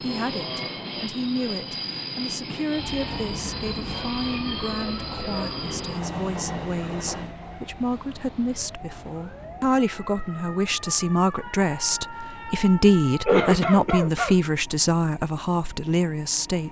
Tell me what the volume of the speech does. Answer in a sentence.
The volume of the speech goes up.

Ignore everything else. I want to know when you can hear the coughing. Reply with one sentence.
The coughing can be heard from 13.2 to 14.3 s.